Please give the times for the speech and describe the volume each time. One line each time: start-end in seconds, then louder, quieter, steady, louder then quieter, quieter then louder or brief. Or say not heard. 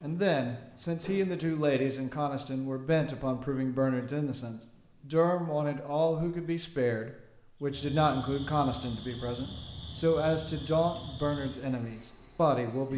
0.0-12.9 steady.